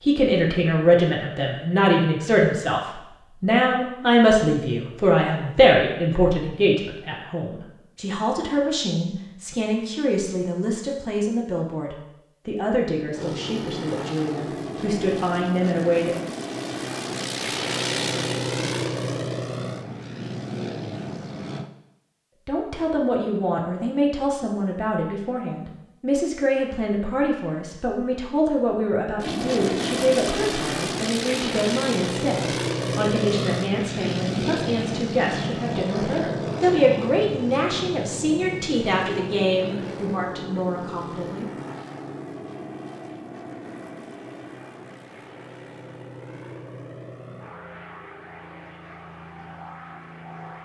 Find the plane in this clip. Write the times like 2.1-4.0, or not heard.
13.1-21.7, 29.2-50.6.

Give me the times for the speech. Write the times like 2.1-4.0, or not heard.
0.0-16.2, 22.4-41.5.